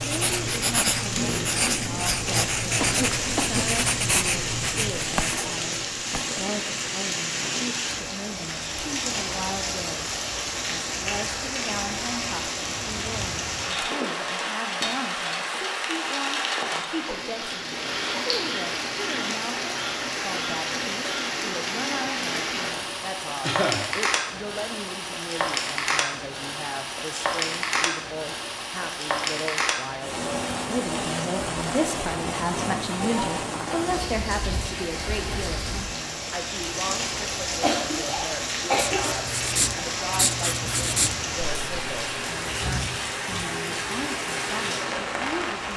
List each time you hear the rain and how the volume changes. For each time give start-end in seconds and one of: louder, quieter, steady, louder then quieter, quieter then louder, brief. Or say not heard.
0.0-45.7 steady.